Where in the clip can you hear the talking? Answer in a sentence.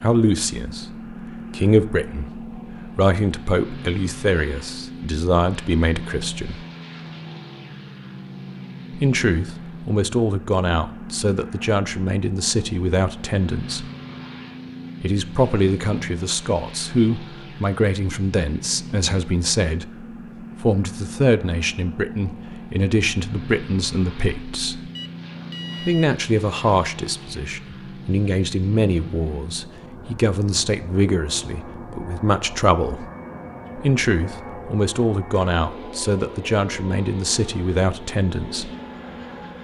You can hear the talking from 0.0 to 6.6 s, from 8.9 to 13.8 s, from 15.0 to 24.9 s, from 25.9 to 33.0 s and from 33.8 to 38.7 s.